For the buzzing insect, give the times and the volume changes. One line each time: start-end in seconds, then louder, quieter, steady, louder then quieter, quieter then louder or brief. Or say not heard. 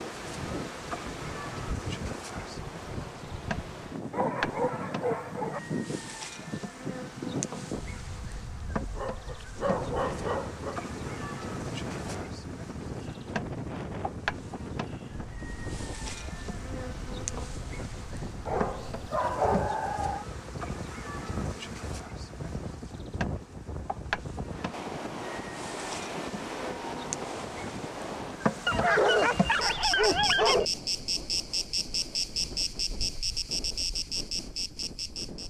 0.0-35.4 louder.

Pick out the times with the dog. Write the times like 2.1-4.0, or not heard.
4.1-5.7, 8.9-10.8, 18.4-20.2, 28.6-30.6.